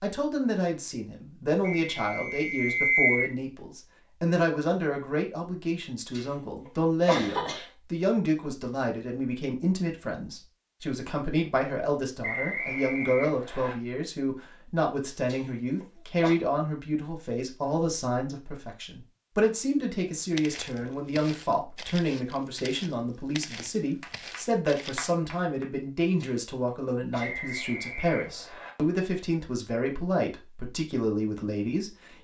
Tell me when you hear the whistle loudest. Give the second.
3 s.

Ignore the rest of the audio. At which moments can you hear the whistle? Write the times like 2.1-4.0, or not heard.
1.9-3.3, 12.2-13.8, 27.1-28.7.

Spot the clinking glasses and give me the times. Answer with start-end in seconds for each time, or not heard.
not heard.